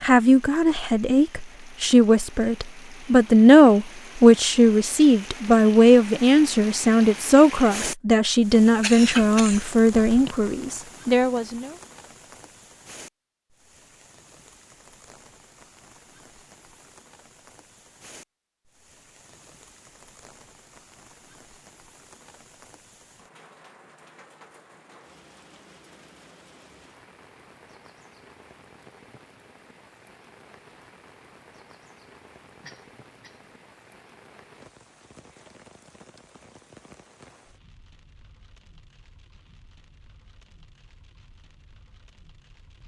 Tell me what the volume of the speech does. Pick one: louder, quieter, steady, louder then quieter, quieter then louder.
louder then quieter.